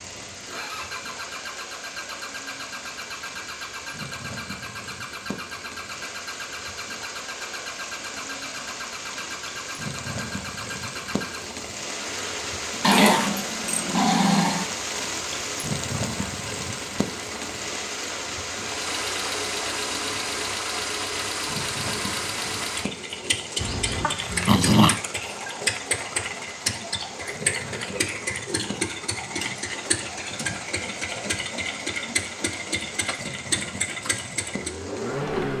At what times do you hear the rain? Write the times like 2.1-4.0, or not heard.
0.0-35.5.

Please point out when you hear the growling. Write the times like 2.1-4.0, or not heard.
12.8-14.7, 23.6-25.0.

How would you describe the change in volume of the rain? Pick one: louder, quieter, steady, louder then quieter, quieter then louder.
louder then quieter.